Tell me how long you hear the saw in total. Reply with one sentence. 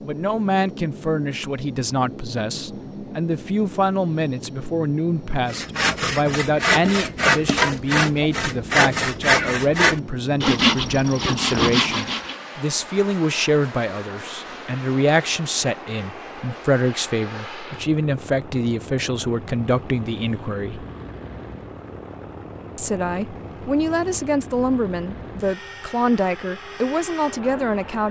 You can hear the saw for 7 seconds altogether.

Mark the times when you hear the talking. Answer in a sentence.
The talking can be heard from 0.0 to 20.9 s and from 22.8 to 28.0 s.